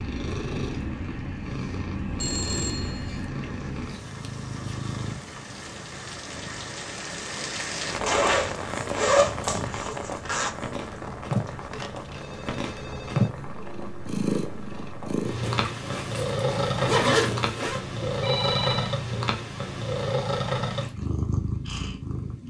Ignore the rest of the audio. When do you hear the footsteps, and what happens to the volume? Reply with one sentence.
You can't hear the footsteps here.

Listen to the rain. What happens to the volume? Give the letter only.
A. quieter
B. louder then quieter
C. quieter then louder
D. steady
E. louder
B.